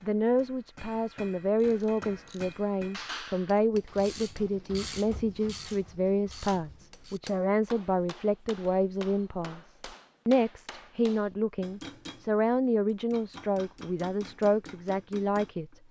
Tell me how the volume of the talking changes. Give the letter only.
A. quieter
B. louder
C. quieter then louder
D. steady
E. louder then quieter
D.